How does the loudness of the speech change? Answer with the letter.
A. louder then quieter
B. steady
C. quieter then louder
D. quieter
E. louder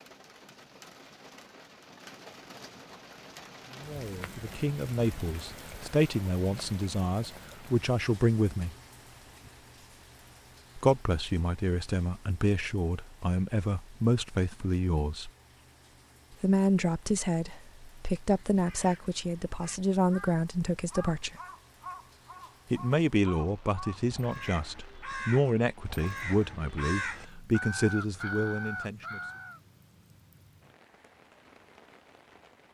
B.